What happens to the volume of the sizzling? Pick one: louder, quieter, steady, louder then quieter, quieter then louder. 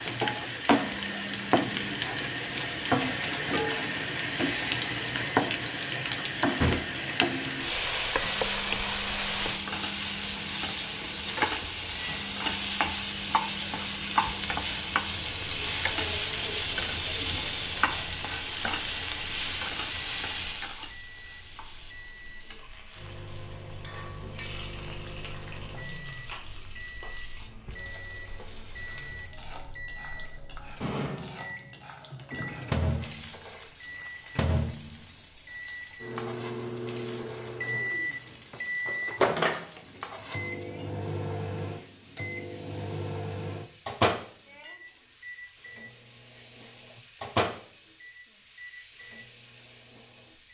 quieter.